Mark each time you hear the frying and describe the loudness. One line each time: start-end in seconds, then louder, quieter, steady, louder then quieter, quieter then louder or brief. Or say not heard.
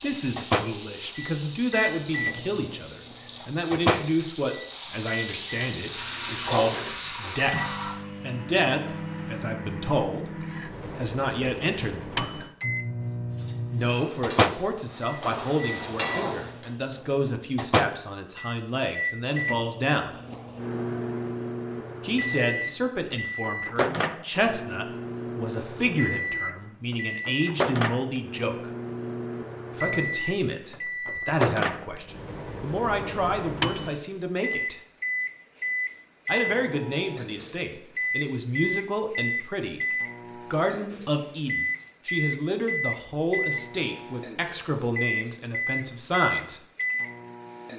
0.0-8.0 louder
13.8-16.7 brief.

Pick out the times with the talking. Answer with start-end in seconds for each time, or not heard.
0.0-12.4, 13.7-20.1, 22.0-28.7, 29.8-34.8, 36.2-46.6.